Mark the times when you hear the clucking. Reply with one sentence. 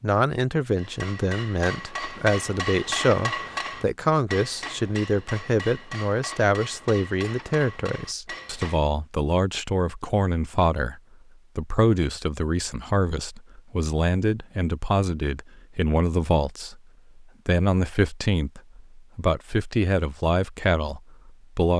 The clucking can't be heard in this clip.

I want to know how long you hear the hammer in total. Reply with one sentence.
The hammer can be heard for 8 seconds in total.